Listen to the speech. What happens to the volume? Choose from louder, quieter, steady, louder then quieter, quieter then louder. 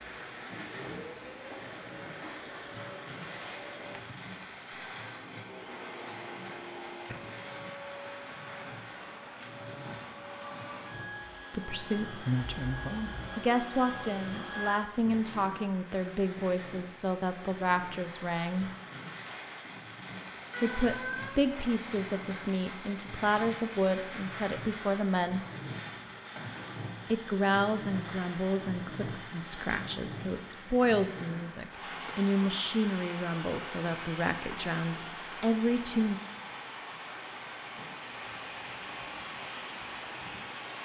steady.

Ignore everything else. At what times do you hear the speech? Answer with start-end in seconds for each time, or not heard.
11.5-18.7, 20.6-25.4, 27.1-36.2.